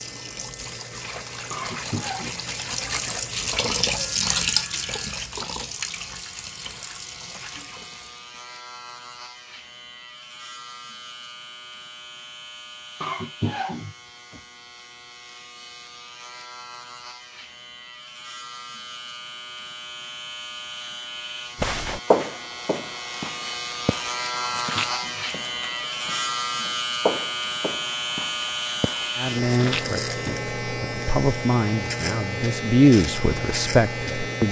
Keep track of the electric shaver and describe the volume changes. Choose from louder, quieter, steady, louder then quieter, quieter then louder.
louder.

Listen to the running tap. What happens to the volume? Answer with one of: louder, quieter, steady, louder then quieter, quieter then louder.
louder then quieter.